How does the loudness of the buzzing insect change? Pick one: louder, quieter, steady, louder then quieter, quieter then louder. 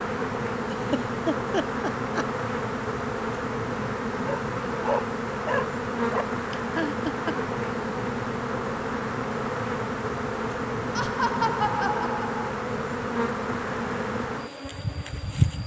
steady.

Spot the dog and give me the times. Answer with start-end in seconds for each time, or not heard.
4.2-6.2.